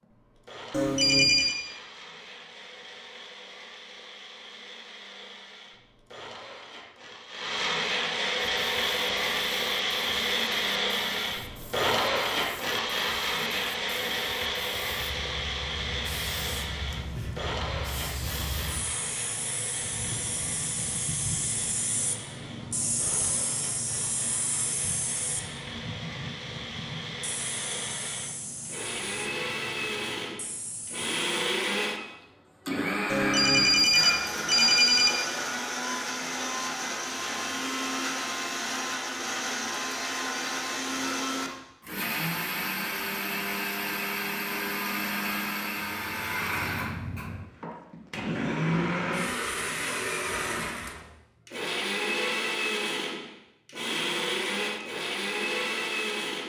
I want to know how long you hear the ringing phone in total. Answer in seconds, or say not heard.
3 s.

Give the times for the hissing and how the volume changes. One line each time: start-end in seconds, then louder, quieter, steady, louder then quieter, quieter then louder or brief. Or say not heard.
8.6-31.3 louder then quieter.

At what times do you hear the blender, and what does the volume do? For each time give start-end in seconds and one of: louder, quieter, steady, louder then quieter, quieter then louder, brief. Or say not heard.
0.0-56.4 steady.